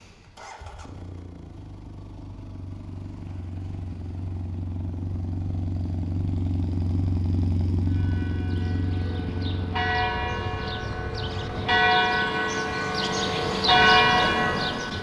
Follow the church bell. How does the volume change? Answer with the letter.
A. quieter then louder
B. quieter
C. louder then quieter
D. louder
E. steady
D.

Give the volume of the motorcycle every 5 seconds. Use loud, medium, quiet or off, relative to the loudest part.
medium, loud, medium.